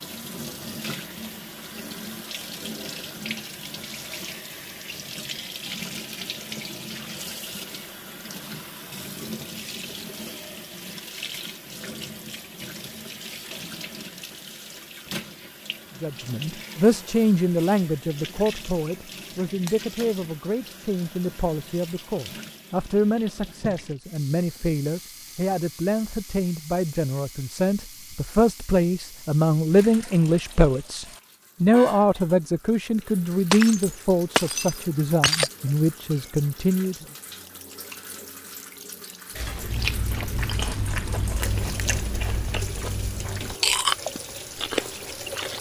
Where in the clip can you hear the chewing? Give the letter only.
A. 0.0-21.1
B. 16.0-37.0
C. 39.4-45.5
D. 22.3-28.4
C.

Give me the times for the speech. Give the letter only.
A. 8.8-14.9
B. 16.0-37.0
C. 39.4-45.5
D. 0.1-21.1
B.